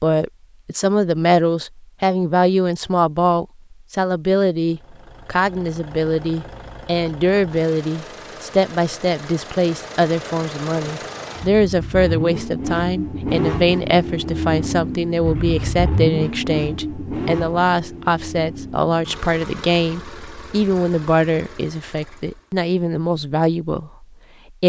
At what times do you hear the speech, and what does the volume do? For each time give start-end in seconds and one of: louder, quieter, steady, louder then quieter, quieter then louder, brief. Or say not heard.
0.0-24.6 steady.